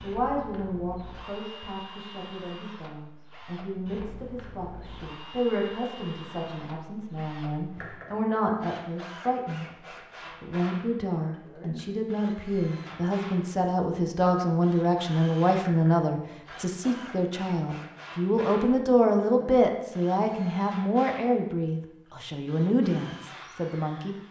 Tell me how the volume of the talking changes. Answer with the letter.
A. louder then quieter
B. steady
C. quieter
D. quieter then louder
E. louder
E.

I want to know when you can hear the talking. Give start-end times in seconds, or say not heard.
0.0-9.7, 10.3-24.1.